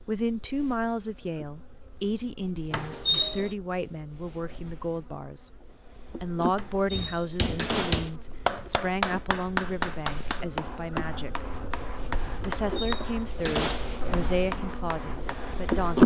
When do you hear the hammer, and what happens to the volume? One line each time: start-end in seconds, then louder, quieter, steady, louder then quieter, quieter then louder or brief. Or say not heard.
6.9-15.9 quieter.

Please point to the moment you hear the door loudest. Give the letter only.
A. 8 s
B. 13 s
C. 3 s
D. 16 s
C.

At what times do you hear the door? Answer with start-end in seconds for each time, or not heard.
2.7-3.5, 6.5-8.1, 12.4-13.9.